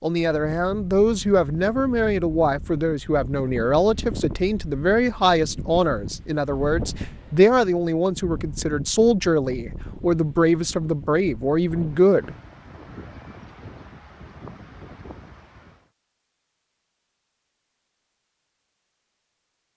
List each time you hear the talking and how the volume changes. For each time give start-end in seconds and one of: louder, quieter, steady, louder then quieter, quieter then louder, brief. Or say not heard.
0.0-12.3 steady.